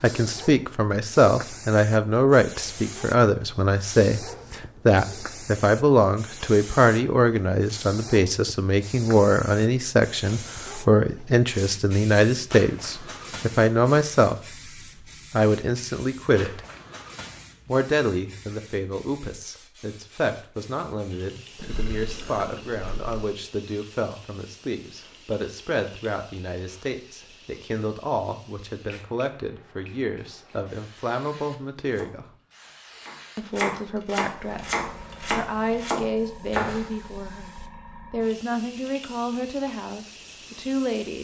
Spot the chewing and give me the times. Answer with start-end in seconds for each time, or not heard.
not heard.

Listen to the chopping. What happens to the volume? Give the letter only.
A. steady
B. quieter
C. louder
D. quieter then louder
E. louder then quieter
C.